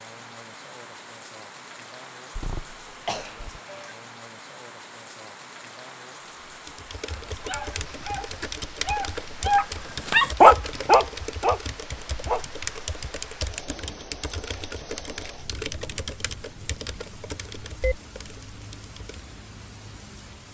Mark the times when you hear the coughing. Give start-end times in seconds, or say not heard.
2.3-3.6.